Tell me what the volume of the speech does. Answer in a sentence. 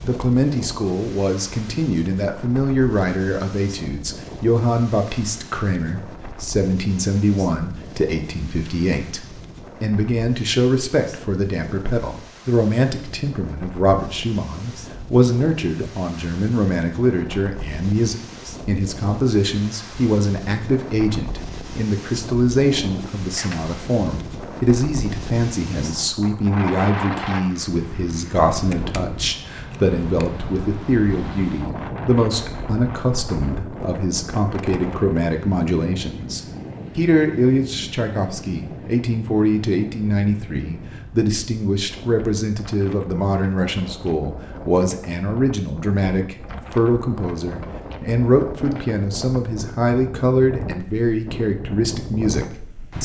The loudness of the speech stays about the same.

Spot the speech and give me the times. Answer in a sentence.
The speech can be heard from 0.0 to 52.9 s.